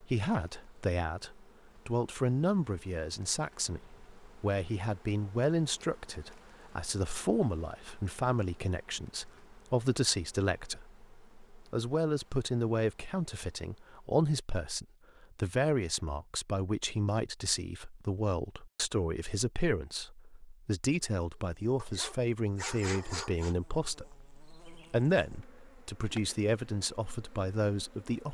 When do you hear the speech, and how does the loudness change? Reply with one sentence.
You can hear the speech from 0.0 to 28.2 s, at a steady volume.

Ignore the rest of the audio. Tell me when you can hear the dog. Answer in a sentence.
The dog can be heard from 21.8 to 23.6 s.